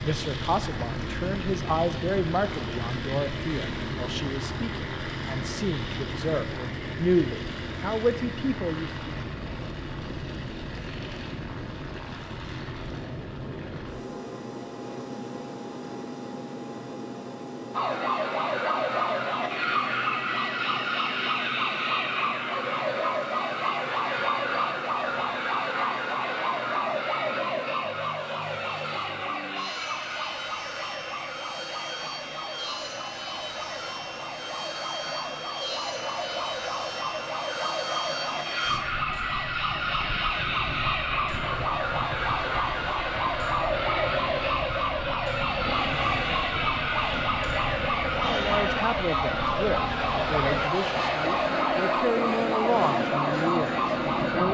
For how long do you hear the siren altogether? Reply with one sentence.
You can hear the siren for 37 seconds altogether.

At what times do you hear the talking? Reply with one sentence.
You can hear the talking from 0.0 to 9.2 s and from 48.2 to 54.4 s.